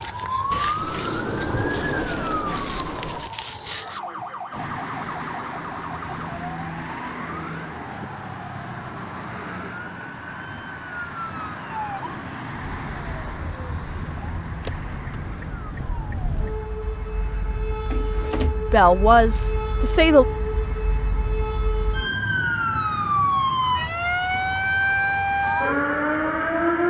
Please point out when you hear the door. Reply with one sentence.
The door can be heard from 0.5 to 3.3 s and from 17.9 to 18.6 s.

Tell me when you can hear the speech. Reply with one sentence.
You can hear the speech from 18.7 to 20.2 s.